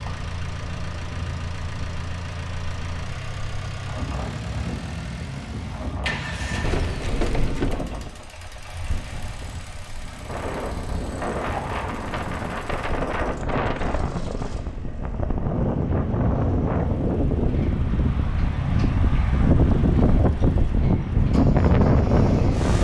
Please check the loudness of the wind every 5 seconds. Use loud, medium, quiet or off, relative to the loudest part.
quiet, quiet, medium, loud, loud.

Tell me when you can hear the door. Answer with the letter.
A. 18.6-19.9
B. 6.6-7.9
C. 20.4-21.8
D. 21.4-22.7
B.